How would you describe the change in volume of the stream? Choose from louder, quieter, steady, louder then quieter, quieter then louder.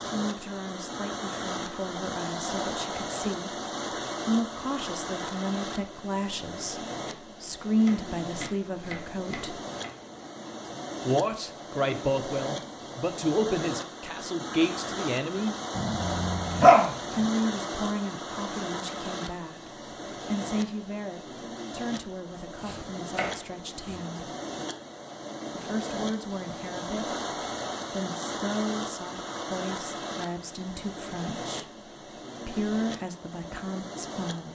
steady.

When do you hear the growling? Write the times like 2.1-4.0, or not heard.
15.8-17.2.